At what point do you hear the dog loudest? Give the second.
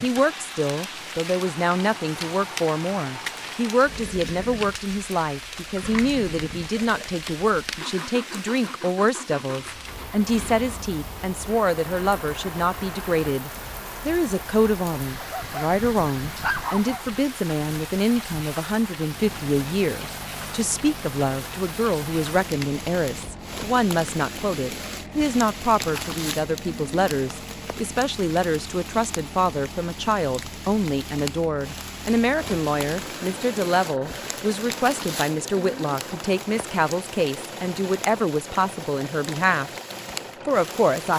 17 s.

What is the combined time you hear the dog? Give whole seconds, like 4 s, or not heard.
2 s.